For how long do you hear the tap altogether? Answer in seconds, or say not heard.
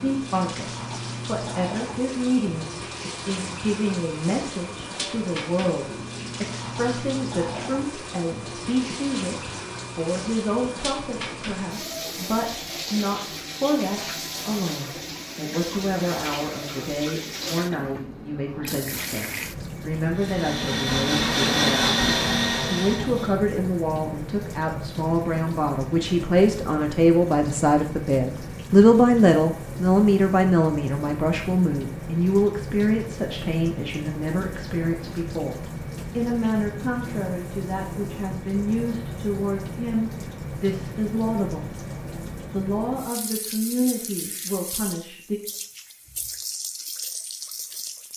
48 s.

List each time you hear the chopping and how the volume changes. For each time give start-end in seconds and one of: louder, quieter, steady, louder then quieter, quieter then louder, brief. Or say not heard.
not heard.